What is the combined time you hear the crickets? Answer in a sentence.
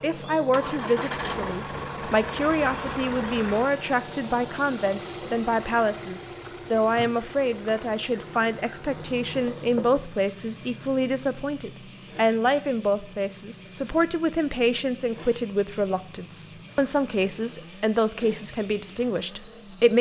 The crickets can be heard for 20 seconds in total.